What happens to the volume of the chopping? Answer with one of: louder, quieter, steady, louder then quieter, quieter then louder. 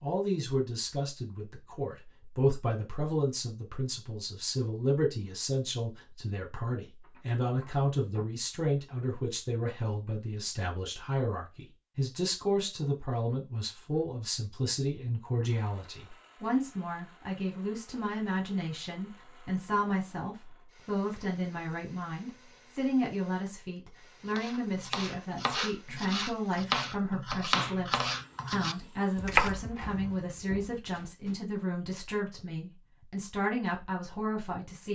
louder then quieter.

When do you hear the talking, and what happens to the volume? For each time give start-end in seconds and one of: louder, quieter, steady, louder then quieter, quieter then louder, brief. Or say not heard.
0.0-34.9 steady.